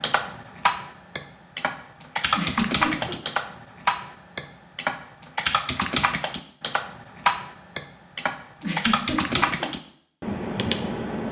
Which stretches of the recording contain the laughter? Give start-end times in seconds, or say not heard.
2.4-3.1, 8.6-9.7.